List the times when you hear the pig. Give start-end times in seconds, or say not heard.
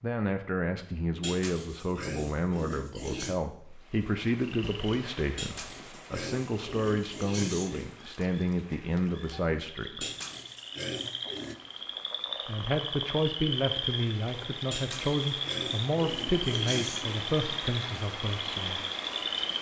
1.2-3.4, 5.3-8.0, 10.0-11.6, 14.7-17.4.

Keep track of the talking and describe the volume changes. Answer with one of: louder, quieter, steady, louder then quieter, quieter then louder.
steady.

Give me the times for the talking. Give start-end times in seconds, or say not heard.
0.0-10.1, 12.4-18.8.